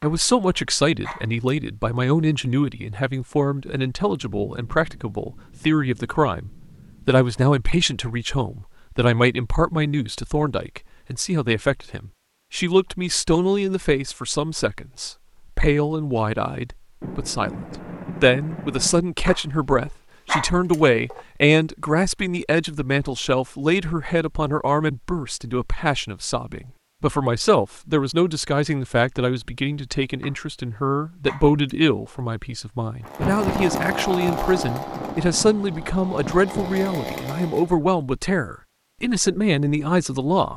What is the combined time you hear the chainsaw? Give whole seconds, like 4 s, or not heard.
5 s.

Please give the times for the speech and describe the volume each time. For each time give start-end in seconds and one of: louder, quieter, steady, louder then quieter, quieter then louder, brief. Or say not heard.
0.0-40.5 steady.